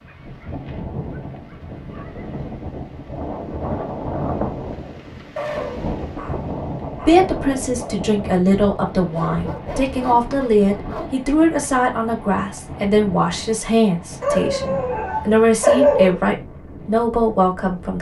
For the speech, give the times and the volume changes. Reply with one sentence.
You can hear the speech from 7.0 to 17.9 s, at a steady volume.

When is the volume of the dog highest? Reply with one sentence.
The volume of the dog peaks at 16 seconds.